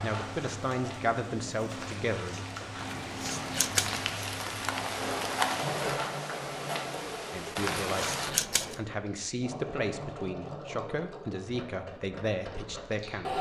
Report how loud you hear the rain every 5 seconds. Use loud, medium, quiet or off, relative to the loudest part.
medium, loud, off.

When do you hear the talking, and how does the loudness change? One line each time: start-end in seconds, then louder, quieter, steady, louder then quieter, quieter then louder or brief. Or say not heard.
0.0-2.4 brief
7.3-13.3 steady.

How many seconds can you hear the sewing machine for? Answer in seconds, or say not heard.
13 s.